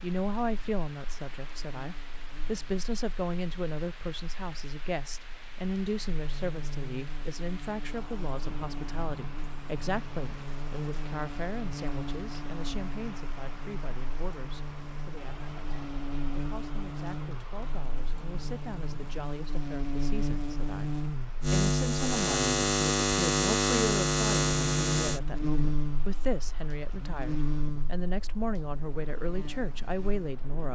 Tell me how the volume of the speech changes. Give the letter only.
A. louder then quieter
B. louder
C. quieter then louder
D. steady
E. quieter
C.